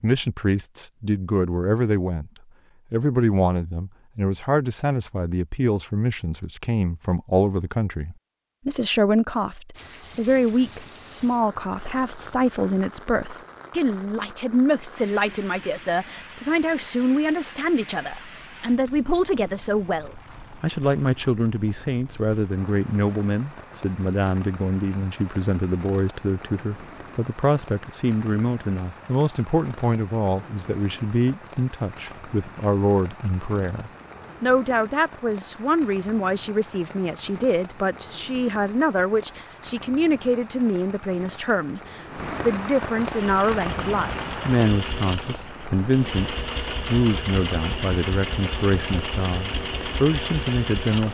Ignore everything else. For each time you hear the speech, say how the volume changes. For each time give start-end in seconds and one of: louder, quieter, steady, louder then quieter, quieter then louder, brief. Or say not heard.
0.0-2.3 brief
2.9-51.0 steady.